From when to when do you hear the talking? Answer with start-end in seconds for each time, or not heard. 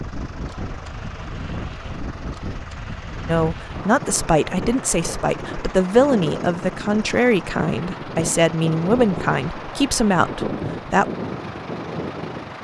3.2-11.1.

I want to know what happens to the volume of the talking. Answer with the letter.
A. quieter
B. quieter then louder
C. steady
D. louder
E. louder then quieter
C.